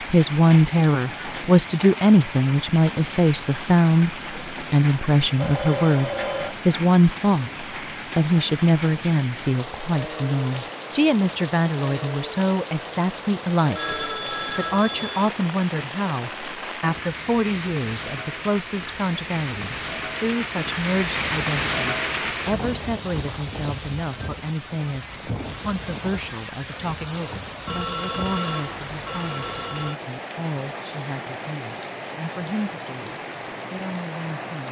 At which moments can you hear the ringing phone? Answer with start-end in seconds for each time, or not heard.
5.3-6.5, 13.7-15.3, 27.6-30.0.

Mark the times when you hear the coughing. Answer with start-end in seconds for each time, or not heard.
not heard.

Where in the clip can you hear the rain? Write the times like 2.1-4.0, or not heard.
0.0-34.6.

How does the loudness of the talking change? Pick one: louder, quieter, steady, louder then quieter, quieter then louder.
quieter.